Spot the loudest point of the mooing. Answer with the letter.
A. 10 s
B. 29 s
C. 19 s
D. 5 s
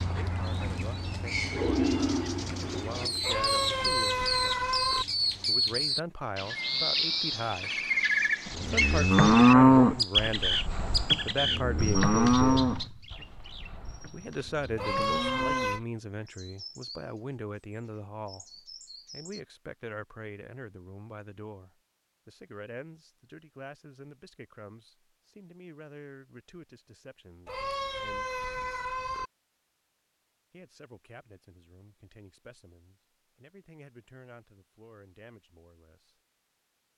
A.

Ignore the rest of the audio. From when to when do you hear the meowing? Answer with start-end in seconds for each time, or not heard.
3.2-5.0, 14.8-15.8, 27.4-29.3.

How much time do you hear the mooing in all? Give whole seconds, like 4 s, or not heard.
7 s.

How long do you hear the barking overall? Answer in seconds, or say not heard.
not heard.